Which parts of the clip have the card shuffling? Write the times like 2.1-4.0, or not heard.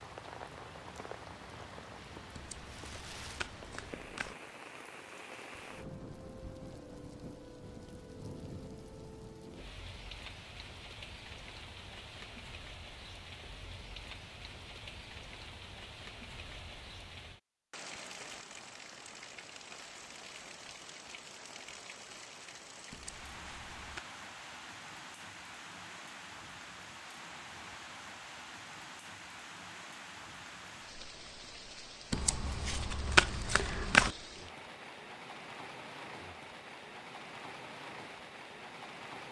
2.4-4.3, 22.9-24.0, 32.1-34.1.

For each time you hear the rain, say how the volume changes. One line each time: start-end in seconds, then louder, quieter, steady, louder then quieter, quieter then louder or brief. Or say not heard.
0.0-39.2 steady.